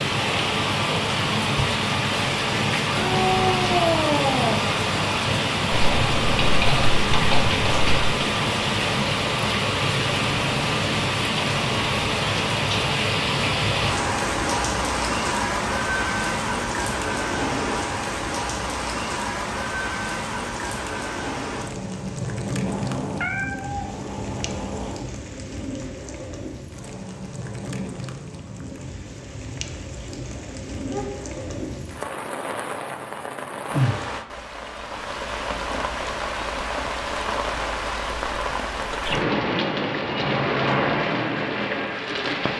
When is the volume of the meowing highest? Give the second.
4 s.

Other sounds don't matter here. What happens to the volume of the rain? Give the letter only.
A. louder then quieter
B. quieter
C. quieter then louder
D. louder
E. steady
C.